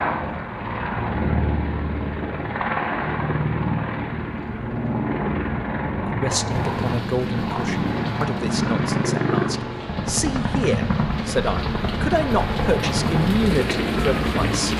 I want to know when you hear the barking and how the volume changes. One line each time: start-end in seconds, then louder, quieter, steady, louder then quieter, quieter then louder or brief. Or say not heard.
not heard.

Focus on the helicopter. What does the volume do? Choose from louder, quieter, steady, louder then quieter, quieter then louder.
steady.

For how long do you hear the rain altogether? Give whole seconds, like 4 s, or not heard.
8 s.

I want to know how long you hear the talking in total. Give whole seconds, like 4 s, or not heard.
9 s.